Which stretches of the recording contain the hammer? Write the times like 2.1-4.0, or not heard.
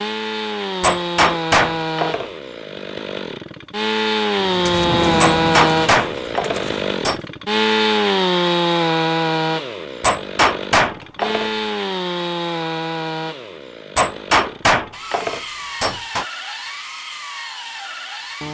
0.8-2.3, 5.2-7.2, 10.0-11.5, 13.9-16.2.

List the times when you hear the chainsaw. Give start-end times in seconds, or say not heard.
0.0-18.4.